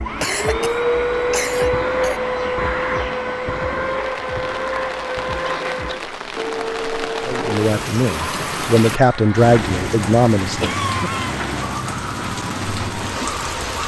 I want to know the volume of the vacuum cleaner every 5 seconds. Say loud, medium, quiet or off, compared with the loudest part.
loud, medium, medium.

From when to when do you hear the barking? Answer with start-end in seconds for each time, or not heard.
not heard.